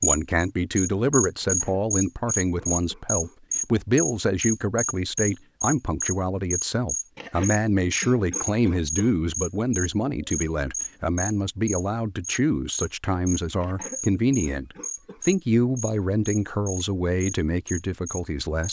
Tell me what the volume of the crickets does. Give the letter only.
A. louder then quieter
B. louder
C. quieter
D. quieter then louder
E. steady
C.